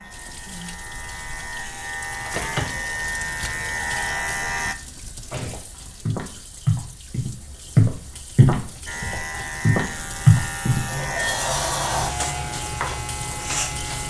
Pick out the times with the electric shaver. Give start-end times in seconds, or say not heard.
0.0-4.8, 8.8-14.0.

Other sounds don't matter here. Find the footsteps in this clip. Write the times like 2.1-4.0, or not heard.
5.4-10.9.